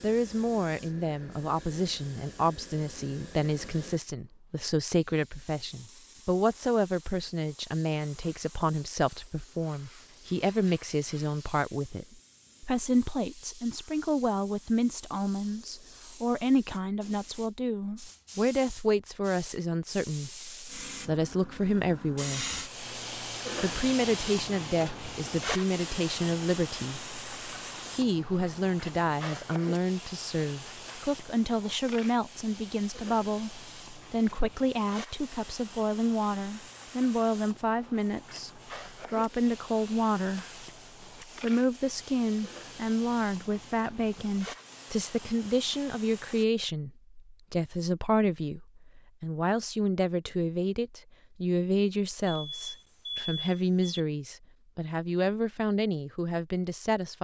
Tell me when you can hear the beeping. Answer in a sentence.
The beeping can be heard from 52.2 to 54.0 s.